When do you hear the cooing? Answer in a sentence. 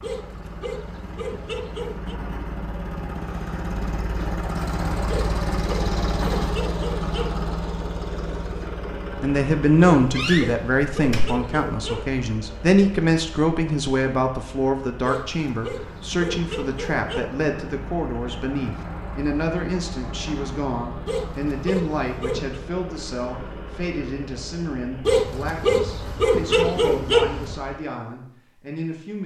You can't hear the cooing here.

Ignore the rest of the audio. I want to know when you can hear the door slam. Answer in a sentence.
You can hear the door slam from 10.2 to 11.3 s.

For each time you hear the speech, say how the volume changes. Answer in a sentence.
The speech can be heard from 9.2 to 29.2 s, getting quieter.